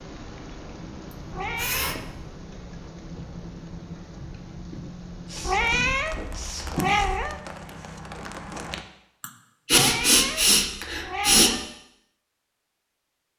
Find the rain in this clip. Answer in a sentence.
You can hear the rain from 0.0 to 8.8 s.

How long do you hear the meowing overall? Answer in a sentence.
You can hear the meowing for 5 seconds altogether.